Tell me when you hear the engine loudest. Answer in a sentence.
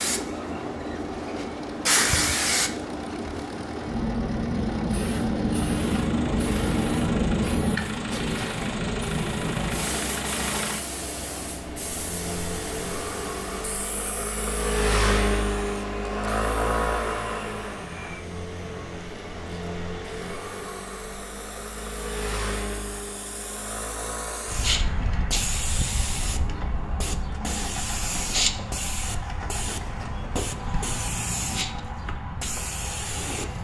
The loudest moment of the engine is at 15 seconds.